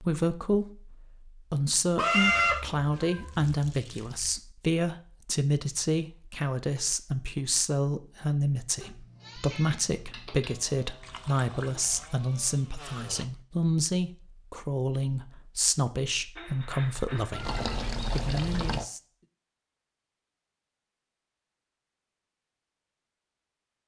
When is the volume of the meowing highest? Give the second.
2 s.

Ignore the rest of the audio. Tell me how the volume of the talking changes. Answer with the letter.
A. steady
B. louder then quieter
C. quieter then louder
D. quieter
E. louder
A.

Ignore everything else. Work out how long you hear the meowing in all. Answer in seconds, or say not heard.
4 s.